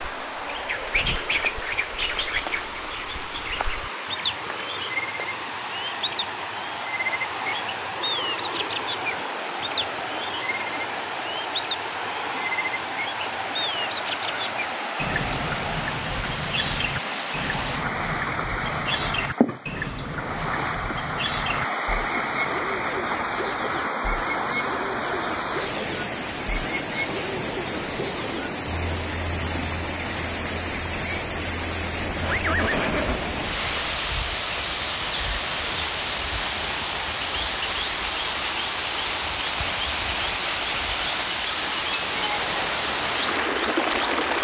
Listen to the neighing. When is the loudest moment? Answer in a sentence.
The volume of the neighing peaks at 33 seconds.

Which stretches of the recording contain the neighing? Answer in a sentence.
You can hear the neighing from 32.0 to 34.0 s.